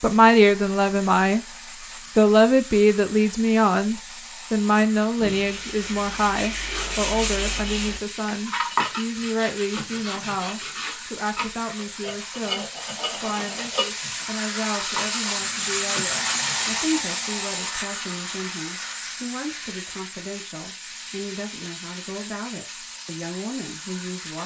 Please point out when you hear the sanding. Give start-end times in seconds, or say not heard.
5.2-16.9.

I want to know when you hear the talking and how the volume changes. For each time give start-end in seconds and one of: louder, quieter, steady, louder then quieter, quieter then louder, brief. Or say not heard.
0.0-1.4 brief
2.1-24.4 quieter.